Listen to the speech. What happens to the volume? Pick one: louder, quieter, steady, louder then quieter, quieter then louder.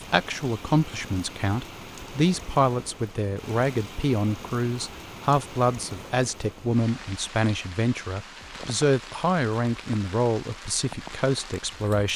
steady.